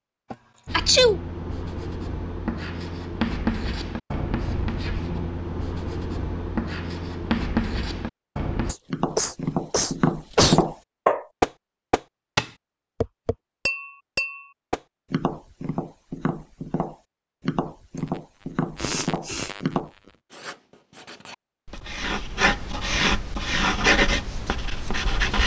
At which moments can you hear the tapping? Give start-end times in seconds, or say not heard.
8.9-19.9.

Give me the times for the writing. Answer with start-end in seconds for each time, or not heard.
0.7-8.8, 20.3-25.4.